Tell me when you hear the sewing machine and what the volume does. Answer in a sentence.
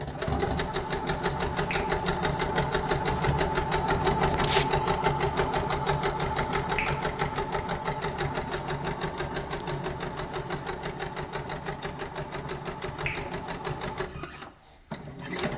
The sewing machine can be heard from 0.0 to 15.5 s, getting quieter.